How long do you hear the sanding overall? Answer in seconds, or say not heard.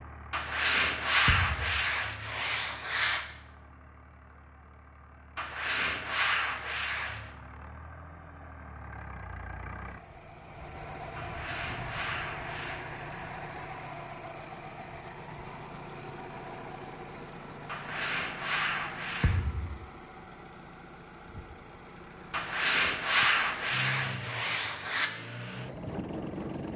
11 s.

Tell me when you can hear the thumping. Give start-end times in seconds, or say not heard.
1.2-1.9, 19.2-19.9.